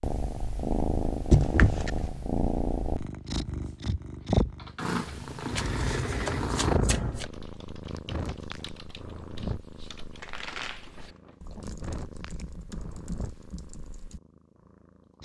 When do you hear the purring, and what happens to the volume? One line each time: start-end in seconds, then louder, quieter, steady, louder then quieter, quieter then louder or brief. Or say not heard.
0.0-15.1 quieter.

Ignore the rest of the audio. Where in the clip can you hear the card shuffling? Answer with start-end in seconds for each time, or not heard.
1.3-2.1, 5.5-7.2, 10.2-11.3.